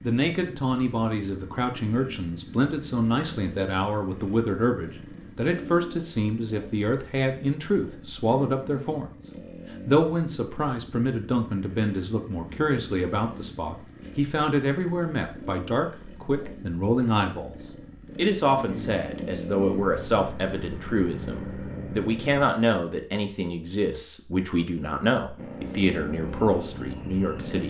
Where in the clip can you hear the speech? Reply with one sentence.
You can hear the speech from 0.0 to 9.1 s, from 9.8 to 17.6 s and from 18.1 to 27.6 s.